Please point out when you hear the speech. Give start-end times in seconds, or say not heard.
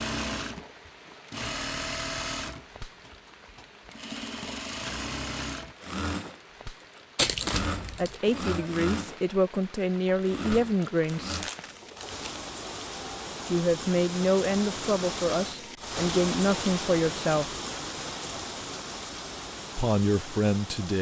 8.0-11.4, 13.5-17.6, 19.8-20.9.